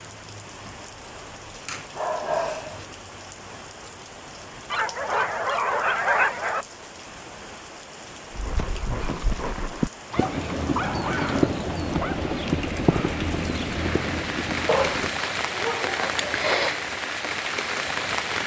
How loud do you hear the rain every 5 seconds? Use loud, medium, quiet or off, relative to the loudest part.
quiet, quiet, medium, loud.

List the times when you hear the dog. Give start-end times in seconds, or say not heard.
1.6-2.8, 4.7-6.7, 10.1-12.2, 14.7-16.7.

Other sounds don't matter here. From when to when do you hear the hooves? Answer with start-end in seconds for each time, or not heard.
8.3-15.3.